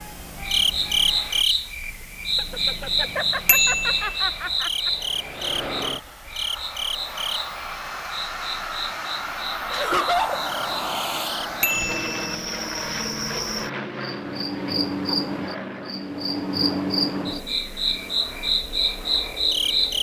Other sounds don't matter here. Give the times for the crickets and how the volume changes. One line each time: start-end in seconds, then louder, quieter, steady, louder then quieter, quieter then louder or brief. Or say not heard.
0.0-19.9 quieter then louder.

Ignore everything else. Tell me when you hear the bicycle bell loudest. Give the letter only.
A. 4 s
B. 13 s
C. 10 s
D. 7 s
A.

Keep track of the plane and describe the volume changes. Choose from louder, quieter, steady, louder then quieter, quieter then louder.
louder then quieter.